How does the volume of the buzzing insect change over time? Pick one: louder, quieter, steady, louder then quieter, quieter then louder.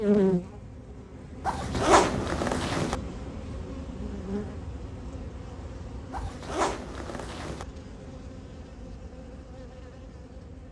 quieter.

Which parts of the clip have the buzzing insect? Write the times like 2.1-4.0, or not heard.
0.0-10.6.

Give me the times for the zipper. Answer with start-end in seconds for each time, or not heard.
1.4-3.0, 6.1-7.7.